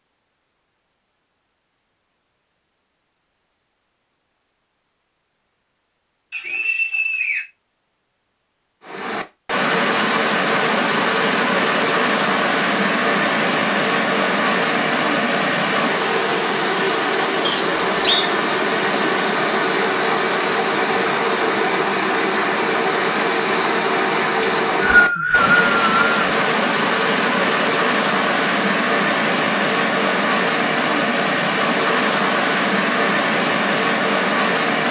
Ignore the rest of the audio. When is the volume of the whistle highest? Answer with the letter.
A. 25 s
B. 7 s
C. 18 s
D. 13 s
A.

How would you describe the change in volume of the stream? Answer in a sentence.
The loudness of the stream stays about the same.